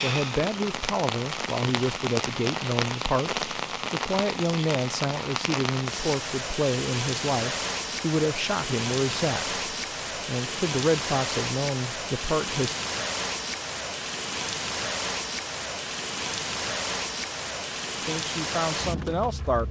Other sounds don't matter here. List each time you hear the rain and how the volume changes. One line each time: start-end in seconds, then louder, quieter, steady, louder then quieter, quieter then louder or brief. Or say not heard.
0.0-19.6 steady.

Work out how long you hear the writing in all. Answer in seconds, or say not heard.
not heard.